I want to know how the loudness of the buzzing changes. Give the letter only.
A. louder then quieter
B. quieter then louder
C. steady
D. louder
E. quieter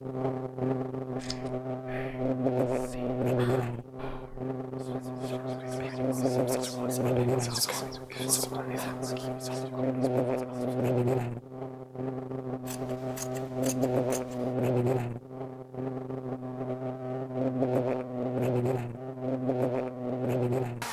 C.